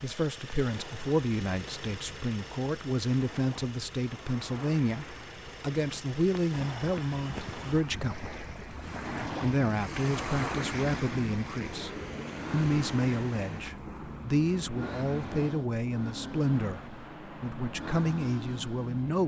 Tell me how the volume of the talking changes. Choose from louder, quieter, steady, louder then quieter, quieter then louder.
steady.